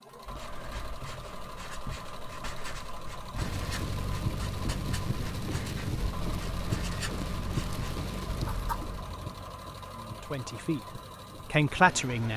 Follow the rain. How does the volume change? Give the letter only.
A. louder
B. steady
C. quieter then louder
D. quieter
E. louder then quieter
D.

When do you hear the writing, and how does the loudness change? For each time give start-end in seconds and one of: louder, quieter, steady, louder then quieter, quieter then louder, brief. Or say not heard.
0.1-8.9 steady.